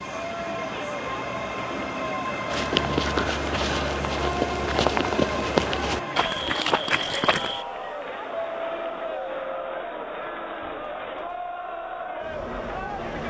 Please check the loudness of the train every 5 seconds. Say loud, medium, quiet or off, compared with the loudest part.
loud, loud, medium.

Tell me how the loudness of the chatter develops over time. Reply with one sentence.
The volume of the chatter stays about the same.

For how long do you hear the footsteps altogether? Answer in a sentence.
The footsteps can be heard for 5 seconds in total.